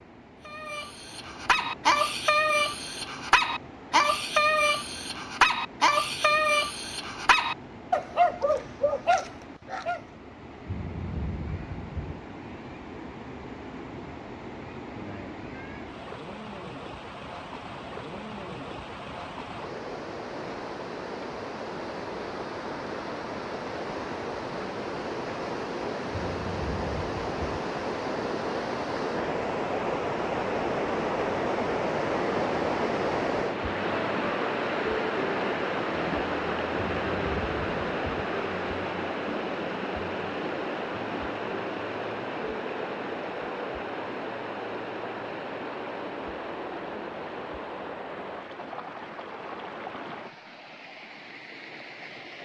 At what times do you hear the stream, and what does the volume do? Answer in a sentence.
You can hear the stream from 0.0 to 52.3 s, getting louder then quieter.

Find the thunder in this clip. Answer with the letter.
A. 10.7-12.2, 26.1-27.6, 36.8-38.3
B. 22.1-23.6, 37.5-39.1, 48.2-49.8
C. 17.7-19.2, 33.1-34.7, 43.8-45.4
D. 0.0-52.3
A.